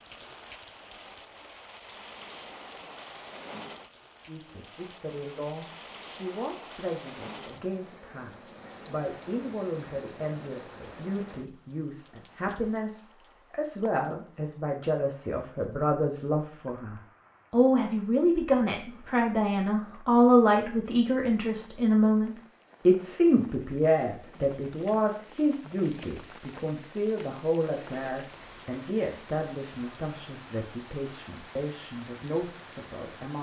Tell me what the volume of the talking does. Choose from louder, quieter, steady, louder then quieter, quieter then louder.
louder then quieter.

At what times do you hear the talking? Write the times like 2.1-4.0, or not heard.
4.2-33.3.